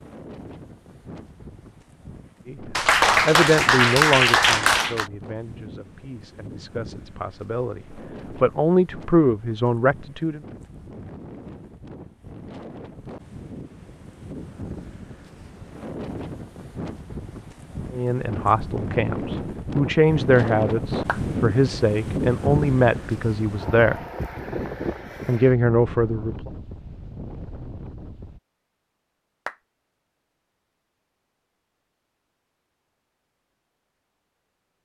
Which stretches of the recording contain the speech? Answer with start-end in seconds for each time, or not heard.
2.5-10.4, 17.9-24.0, 25.2-26.5.